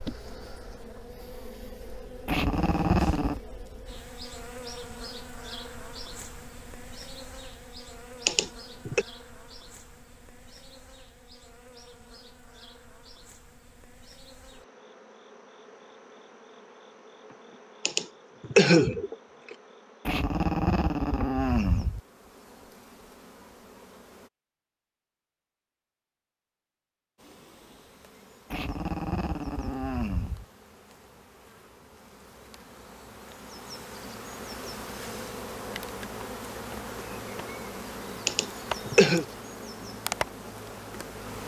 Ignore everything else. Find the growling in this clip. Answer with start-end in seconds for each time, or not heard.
2.2-3.4, 20.1-22.0, 28.5-30.4.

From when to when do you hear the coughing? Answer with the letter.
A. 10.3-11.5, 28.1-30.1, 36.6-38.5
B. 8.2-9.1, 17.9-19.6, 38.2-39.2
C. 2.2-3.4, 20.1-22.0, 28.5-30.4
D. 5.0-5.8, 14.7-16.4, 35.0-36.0
B.